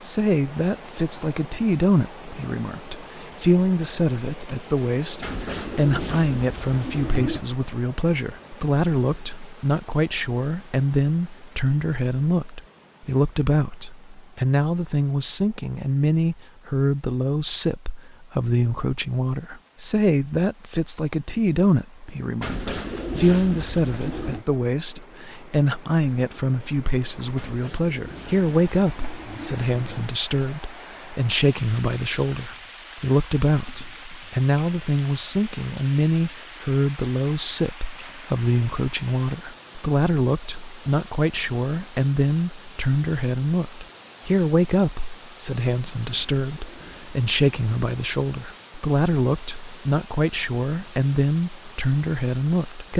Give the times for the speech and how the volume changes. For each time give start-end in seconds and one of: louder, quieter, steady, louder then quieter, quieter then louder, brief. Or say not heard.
0.0-52.9 steady.